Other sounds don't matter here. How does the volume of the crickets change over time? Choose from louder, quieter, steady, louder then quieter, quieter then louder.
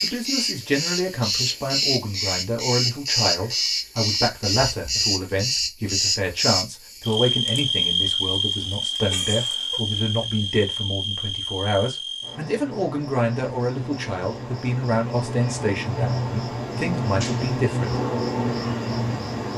quieter then louder.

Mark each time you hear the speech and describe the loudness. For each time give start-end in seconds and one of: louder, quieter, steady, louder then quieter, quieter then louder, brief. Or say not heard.
0.0-18.0 steady.